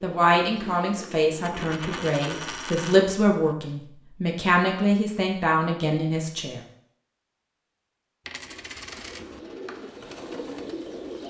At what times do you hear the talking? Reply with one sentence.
You can hear the talking from 0.0 to 6.6 s.